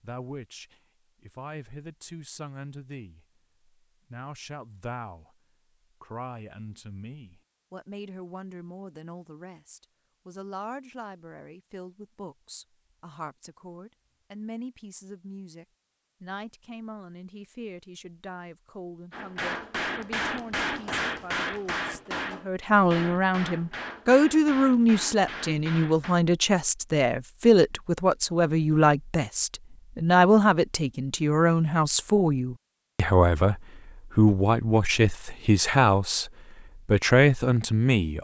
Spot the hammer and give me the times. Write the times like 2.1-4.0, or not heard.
19.1-26.1.